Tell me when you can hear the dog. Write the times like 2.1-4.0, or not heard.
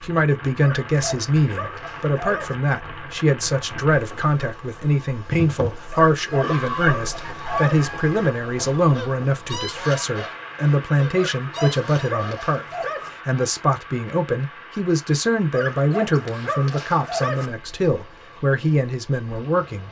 0.6-2.5, 5.9-7.8, 11.2-13.1, 15.5-17.5.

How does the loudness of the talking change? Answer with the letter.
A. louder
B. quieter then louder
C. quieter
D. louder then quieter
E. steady
E.